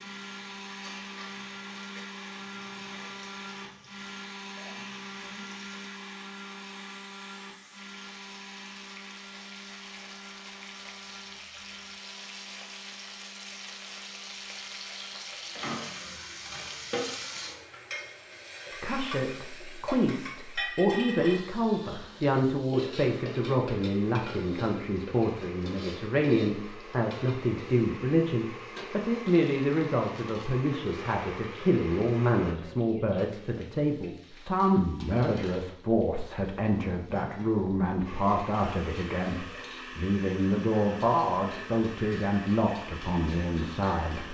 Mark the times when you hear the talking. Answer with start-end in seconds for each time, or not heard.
18.8-44.2.